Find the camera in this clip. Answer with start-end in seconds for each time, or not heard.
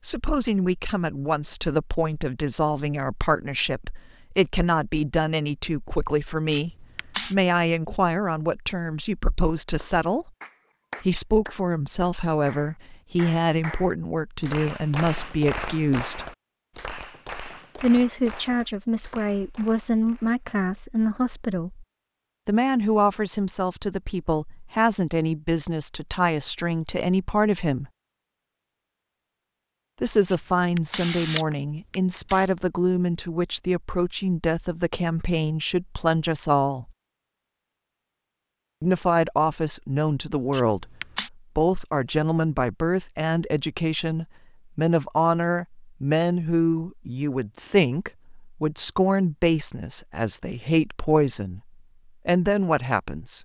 6.5-7.3, 30.2-32.5, 40.5-41.3.